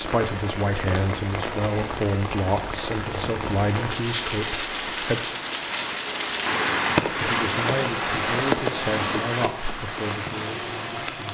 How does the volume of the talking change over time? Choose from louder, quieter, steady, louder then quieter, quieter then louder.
quieter.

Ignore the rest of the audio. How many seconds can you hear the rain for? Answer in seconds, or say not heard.
11 s.